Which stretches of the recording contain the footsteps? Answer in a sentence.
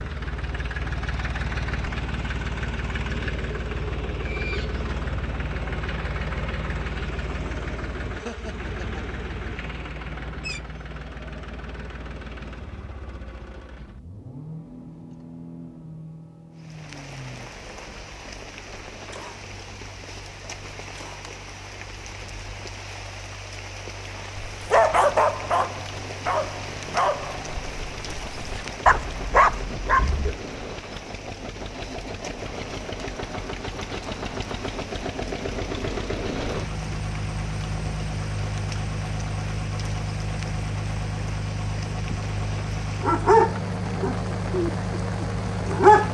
You can't hear the footsteps here.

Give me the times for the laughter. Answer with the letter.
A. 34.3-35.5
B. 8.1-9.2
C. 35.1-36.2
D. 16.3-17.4
B.